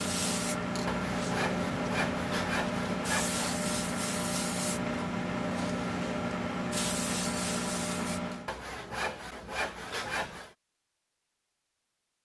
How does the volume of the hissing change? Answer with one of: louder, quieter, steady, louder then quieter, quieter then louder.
steady.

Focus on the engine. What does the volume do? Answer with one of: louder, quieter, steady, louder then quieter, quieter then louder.
steady.